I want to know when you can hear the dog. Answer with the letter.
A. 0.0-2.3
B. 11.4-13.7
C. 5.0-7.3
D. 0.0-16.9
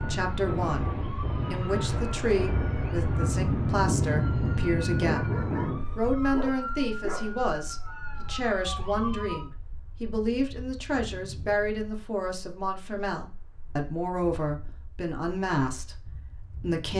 C.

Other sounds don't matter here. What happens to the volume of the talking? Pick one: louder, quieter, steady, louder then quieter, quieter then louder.
steady.